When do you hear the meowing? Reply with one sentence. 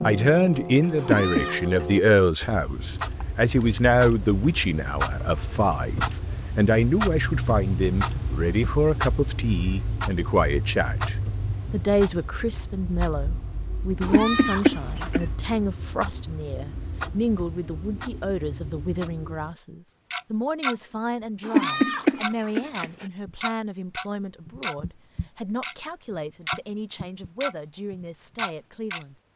The meowing can be heard from 0.9 to 1.6 s, from 14.0 to 15.2 s and from 21.4 to 23.1 s.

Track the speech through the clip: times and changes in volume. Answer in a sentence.
The speech can be heard from 0.1 to 29.1 s, getting quieter.